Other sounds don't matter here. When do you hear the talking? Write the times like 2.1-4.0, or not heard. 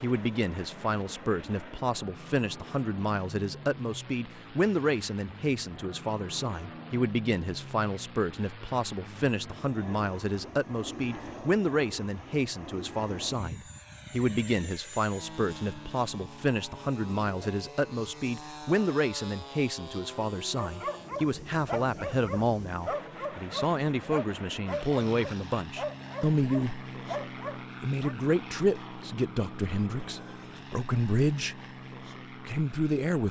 0.0-26.9, 27.8-31.6, 32.4-33.2.